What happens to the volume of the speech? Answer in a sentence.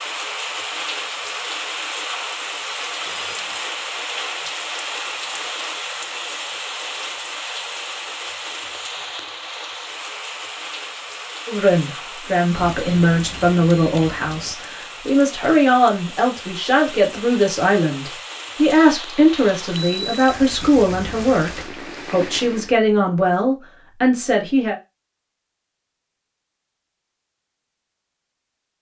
The volume of the speech stays about the same.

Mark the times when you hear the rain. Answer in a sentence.
You can hear the rain from 0.0 to 22.8 s.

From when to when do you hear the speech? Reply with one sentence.
The speech can be heard from 11.4 to 24.8 s.